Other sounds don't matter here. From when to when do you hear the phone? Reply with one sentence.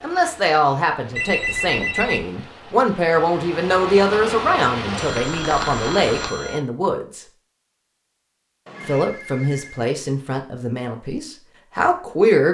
You can hear the phone from 1.1 to 2.3 s, from 5.0 to 6.6 s and from 8.7 to 9.9 s.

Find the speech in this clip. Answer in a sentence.
You can hear the speech from 0.0 to 7.2 s and from 8.8 to 12.4 s.